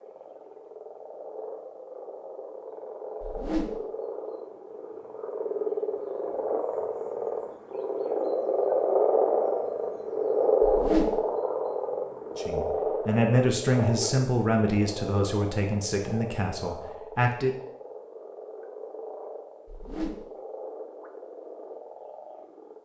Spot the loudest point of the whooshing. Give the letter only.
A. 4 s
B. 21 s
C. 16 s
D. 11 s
D.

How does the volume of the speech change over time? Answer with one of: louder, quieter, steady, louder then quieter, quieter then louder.
quieter.